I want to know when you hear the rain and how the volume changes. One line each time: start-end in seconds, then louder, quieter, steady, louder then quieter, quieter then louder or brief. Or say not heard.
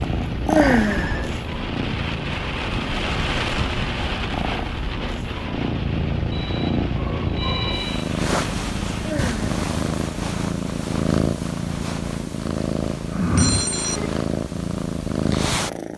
0.0-9.2 louder then quieter.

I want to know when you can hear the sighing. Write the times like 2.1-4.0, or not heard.
0.5-1.1, 9.0-9.5.